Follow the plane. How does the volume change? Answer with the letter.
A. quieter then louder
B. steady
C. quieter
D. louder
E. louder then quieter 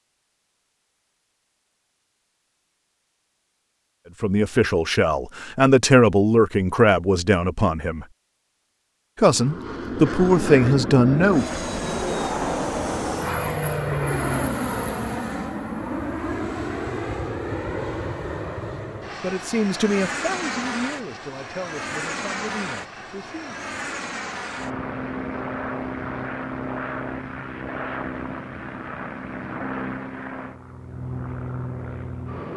C.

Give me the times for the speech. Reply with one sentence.
You can hear the speech from 4.2 to 8.1 s, from 9.2 to 11.6 s and from 19.2 to 23.6 s.